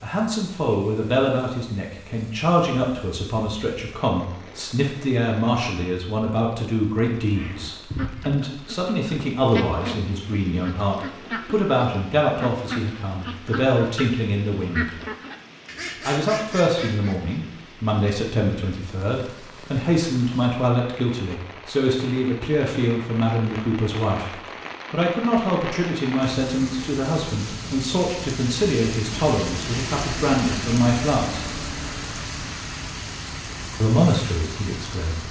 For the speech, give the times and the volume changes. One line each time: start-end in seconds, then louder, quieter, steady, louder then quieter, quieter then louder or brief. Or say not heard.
0.0-14.9 steady
16.1-31.4 steady
33.8-35.2 brief.